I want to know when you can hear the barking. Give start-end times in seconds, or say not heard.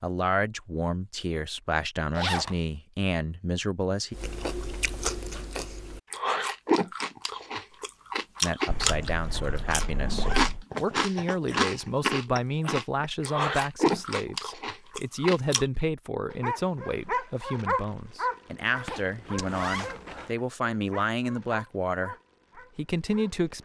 16.2-23.6.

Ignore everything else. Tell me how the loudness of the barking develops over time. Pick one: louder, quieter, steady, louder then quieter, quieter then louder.
quieter.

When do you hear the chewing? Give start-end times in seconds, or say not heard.
4.1-15.7.